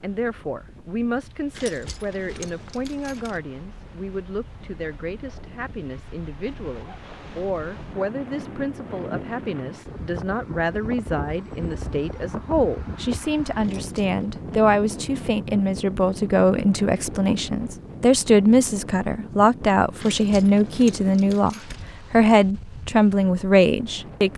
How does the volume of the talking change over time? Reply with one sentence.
The volume of the talking goes up.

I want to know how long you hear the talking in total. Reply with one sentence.
The talking can be heard for 24 seconds in total.